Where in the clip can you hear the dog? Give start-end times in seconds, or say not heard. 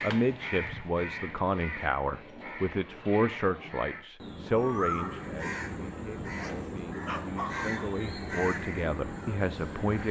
6.2-7.8.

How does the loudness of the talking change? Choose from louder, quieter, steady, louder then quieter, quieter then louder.
quieter then louder.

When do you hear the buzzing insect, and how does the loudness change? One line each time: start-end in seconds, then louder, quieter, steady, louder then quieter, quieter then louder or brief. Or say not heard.
not heard.